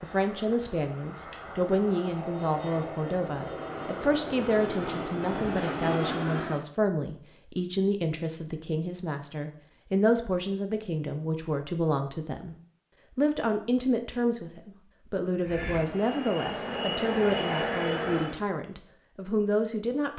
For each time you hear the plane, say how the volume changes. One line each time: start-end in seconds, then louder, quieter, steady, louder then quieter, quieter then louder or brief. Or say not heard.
0.0-6.7 louder
15.4-18.4 brief.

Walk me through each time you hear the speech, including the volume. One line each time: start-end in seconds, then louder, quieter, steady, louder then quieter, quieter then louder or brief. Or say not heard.
0.0-12.6 steady
13.2-20.1 steady.